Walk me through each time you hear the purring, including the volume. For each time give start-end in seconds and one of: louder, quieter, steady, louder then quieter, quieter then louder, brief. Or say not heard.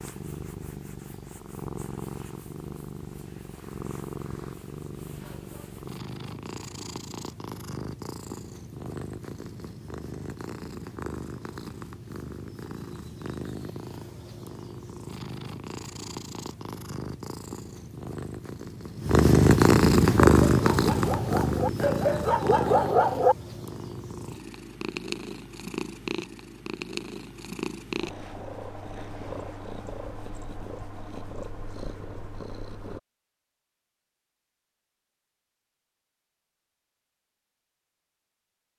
0.0-33.0 louder then quieter.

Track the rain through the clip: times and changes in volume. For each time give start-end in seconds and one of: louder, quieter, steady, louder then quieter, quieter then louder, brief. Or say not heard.
not heard.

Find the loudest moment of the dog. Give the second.
23 s.